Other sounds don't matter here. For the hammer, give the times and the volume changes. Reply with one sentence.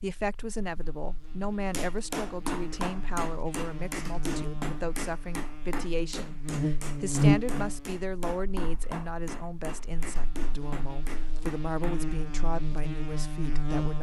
You can hear the hammer from 1.7 to 12.0 s, getting quieter.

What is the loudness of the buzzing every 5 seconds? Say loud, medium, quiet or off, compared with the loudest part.
quiet, loud, medium.